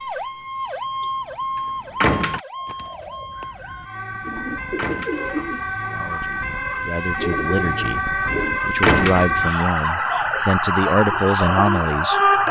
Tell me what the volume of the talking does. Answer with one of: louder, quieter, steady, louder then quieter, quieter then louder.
louder.